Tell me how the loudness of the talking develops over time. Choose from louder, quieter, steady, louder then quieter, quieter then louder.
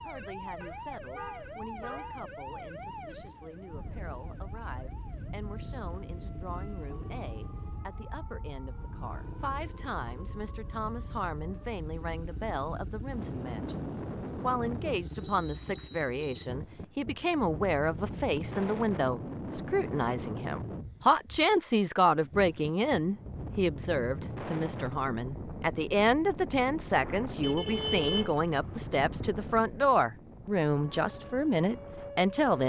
louder.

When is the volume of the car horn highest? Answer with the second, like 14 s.
28 s.